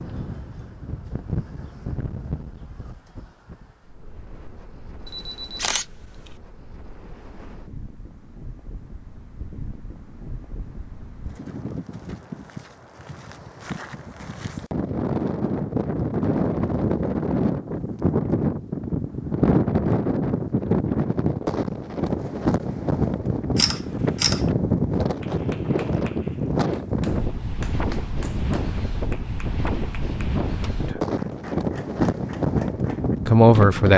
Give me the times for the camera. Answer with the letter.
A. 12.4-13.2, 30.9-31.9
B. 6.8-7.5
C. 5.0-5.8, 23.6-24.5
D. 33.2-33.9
C.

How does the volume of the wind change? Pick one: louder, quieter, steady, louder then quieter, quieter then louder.
louder.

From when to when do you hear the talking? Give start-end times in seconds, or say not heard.
33.2-33.9.